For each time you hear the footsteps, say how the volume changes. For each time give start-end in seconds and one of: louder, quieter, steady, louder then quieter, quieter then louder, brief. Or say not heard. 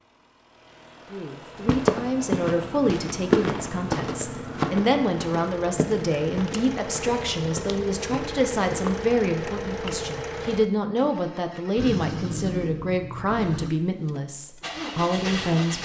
1.6-9.1 quieter.